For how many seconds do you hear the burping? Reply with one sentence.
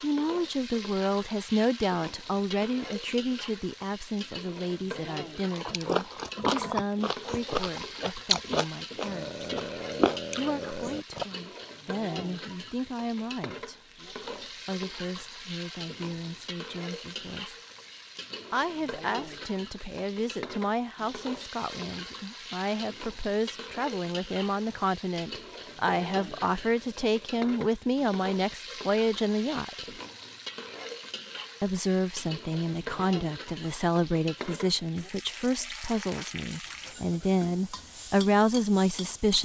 You can hear the burping for 3 seconds altogether.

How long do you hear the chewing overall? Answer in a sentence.
The chewing can be heard for 6 seconds in total.